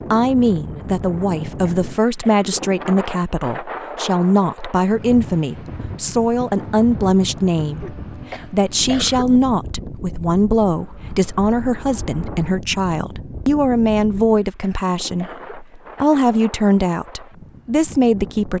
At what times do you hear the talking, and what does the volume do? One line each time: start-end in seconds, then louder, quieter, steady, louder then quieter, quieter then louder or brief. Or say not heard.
0.1-18.5 steady.